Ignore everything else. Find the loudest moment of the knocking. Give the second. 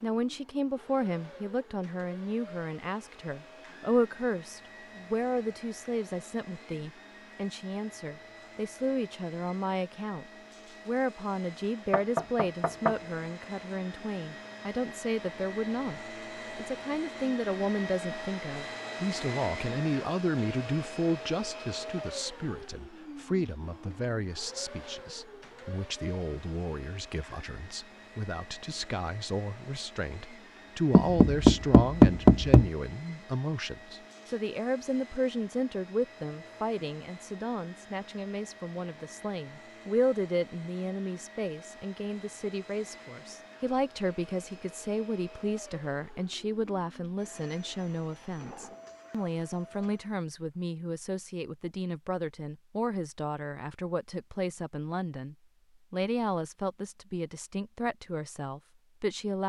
32 s.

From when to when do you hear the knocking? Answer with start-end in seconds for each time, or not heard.
11.9-12.9, 30.9-32.7.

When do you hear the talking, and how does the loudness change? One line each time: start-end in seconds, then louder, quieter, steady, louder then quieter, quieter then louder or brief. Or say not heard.
0.0-59.4 steady.